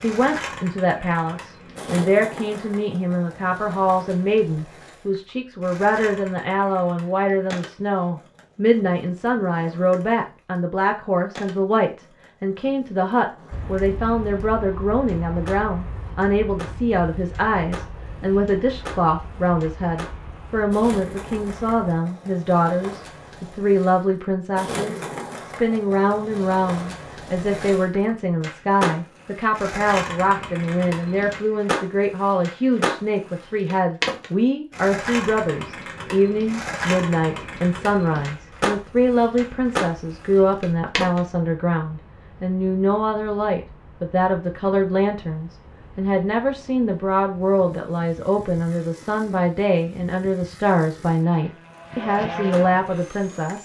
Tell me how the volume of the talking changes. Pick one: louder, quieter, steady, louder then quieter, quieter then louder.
steady.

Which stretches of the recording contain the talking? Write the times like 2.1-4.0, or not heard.
0.0-53.6.